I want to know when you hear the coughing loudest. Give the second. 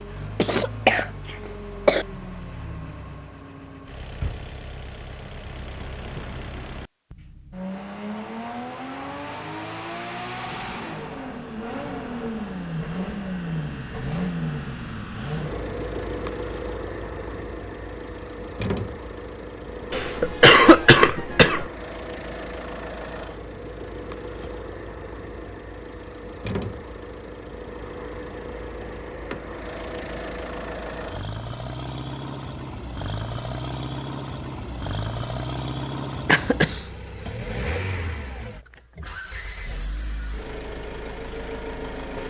21 s.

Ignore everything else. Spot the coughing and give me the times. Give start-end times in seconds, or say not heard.
0.3-2.0, 19.9-21.6, 36.2-36.8.